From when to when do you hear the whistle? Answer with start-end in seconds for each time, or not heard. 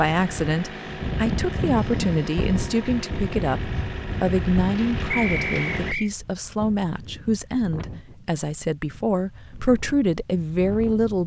5.1-6.1.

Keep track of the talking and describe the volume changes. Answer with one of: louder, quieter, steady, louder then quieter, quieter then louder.
steady.